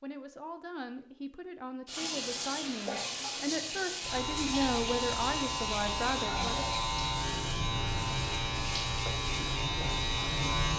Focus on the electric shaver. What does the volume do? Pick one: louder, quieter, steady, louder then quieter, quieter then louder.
steady.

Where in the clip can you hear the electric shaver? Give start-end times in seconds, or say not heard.
4.0-10.7.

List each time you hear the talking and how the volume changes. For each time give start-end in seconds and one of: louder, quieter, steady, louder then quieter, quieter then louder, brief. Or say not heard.
0.0-6.7 louder.